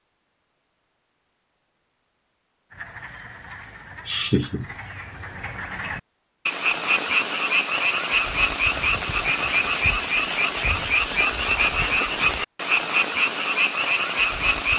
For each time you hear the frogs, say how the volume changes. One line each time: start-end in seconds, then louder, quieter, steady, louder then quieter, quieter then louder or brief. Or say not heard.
2.7-14.7 louder.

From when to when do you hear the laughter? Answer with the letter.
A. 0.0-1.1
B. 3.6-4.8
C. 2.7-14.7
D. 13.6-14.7
B.